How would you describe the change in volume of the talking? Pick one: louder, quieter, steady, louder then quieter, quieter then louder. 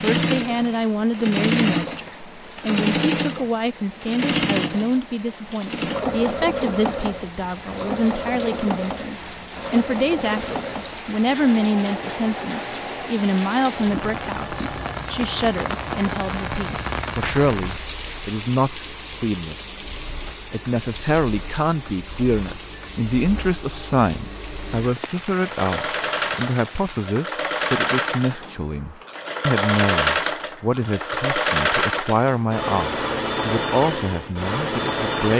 steady.